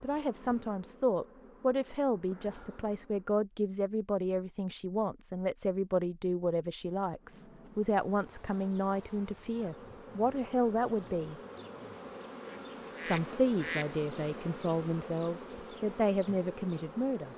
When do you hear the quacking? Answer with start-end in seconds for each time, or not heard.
12.4-13.9.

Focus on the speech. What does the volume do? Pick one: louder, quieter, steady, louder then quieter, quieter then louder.
steady.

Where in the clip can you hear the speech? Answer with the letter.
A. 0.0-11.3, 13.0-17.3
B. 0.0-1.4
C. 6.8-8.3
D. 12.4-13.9
A.